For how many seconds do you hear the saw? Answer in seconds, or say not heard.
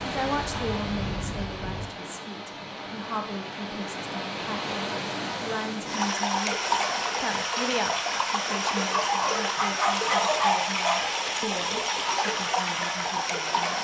not heard.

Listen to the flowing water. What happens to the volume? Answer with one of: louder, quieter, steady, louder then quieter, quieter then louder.
louder.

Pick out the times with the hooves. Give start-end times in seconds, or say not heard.
0.0-1.9.